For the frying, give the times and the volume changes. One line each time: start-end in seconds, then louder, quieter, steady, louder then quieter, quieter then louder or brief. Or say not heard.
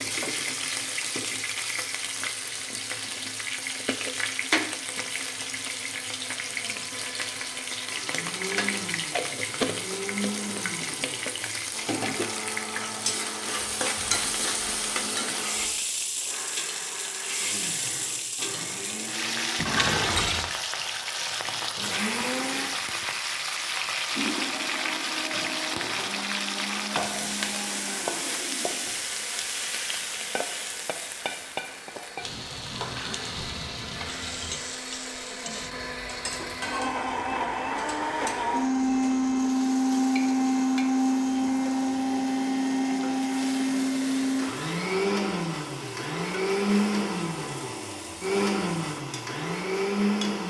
0.0-50.4 quieter.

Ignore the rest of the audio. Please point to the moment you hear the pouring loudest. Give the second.
20 s.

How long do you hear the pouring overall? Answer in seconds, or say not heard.
3 s.